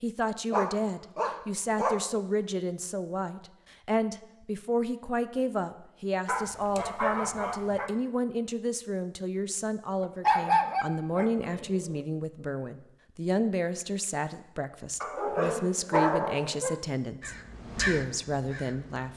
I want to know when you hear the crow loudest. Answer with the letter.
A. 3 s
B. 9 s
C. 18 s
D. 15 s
C.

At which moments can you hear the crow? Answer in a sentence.
You can hear the crow from 17.2 to 19.1 s.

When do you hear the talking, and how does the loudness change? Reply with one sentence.
The talking can be heard from 0.0 to 19.1 s, at a steady volume.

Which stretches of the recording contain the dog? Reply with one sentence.
You can hear the dog from 0.5 to 2.0 s, from 6.2 to 7.9 s, from 10.0 to 12.0 s and from 15.0 to 16.8 s.